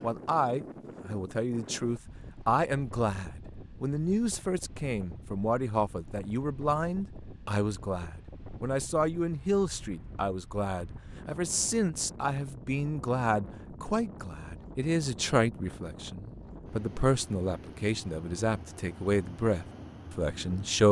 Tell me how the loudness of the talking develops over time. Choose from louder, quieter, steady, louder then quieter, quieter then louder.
steady.